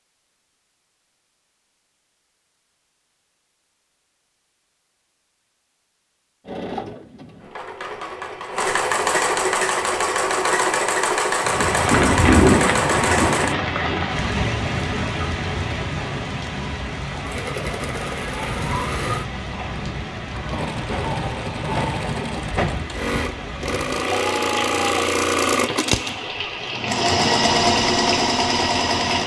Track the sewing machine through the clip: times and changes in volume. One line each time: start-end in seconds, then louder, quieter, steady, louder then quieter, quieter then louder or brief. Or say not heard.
6.5-13.6 louder
17.1-29.2 louder.